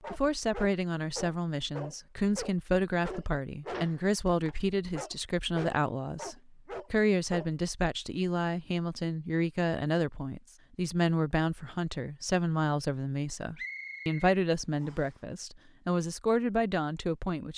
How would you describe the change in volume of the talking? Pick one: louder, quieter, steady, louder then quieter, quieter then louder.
steady.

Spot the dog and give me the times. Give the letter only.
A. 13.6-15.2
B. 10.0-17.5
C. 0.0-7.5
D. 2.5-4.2
C.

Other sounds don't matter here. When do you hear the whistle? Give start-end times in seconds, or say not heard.
13.6-15.2.